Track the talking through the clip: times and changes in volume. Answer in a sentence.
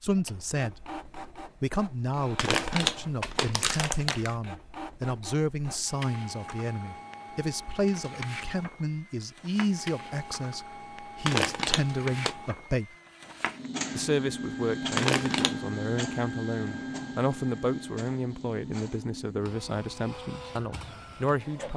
The talking can be heard briefly from 0.0 to 1.0 s; from 1.6 to 12.9 s, at a steady volume; and from 13.9 to 21.7 s, at a steady volume.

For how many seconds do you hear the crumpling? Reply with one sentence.
You can hear the crumpling for 4 seconds altogether.